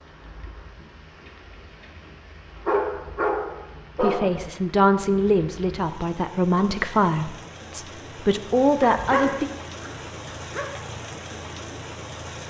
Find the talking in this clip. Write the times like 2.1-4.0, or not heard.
4.0-9.4.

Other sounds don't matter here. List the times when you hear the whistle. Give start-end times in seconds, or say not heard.
not heard.